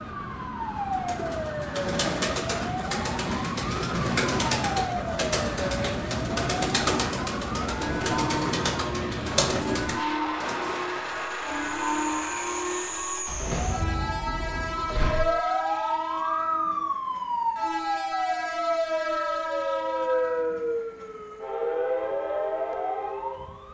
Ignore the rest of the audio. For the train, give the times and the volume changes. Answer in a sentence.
The train can be heard from 0.0 to 23.6 s, at a steady volume.